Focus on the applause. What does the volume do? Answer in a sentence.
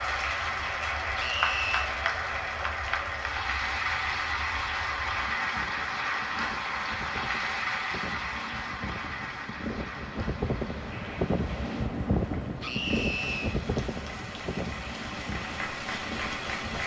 The volume of the applause goes down, then up.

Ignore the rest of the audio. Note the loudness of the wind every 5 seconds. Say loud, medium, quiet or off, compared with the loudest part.
quiet, medium, loud, medium.